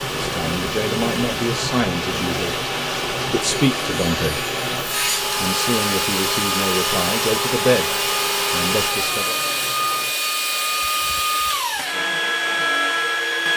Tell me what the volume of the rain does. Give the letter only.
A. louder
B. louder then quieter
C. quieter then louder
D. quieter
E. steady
D.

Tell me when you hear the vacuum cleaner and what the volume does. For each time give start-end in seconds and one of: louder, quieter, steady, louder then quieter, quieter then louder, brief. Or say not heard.
0.0-13.5 louder.